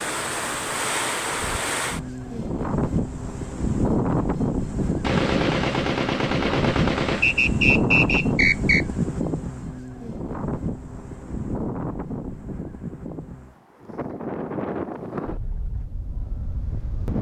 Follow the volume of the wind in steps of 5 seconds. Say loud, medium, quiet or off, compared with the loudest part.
loud, loud, medium, medium.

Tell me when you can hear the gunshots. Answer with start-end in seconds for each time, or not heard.
5.0-7.5.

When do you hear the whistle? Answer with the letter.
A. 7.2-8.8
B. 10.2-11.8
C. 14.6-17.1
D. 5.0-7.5
A.